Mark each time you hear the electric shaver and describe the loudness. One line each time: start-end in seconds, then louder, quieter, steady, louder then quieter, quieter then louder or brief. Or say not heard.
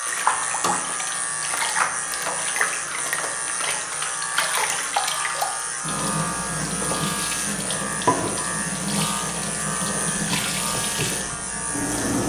0.0-12.2 steady.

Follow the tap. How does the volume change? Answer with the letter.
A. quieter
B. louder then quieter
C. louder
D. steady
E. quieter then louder
D.